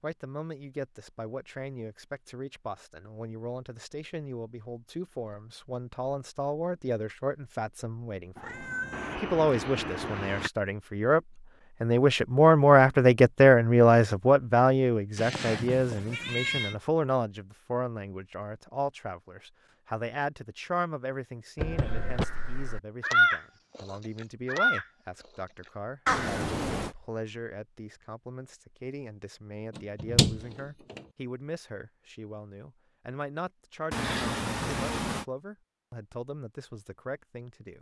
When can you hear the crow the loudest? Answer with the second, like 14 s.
23 s.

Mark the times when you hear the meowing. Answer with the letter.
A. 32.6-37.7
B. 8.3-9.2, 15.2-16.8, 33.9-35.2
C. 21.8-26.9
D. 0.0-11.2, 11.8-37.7
B.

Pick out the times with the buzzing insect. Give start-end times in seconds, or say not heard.
not heard.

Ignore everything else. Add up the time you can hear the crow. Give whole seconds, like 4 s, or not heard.
5 s.